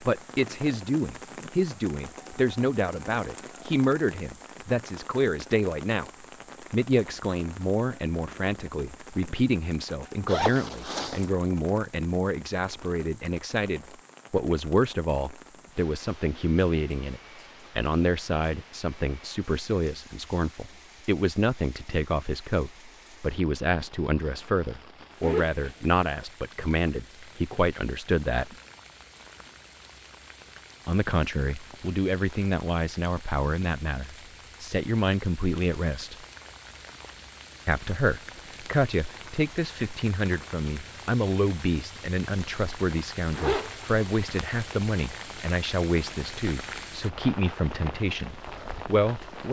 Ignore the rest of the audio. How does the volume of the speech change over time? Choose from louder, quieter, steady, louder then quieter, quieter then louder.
steady.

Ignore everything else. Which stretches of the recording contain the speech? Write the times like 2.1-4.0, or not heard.
0.0-6.1, 6.7-28.6, 30.9-36.2, 37.6-49.4.